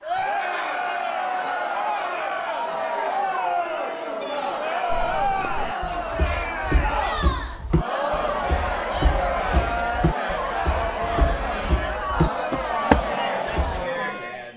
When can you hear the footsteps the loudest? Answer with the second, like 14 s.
13 s.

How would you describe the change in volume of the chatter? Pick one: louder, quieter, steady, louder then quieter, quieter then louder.
steady.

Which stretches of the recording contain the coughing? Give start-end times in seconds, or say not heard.
not heard.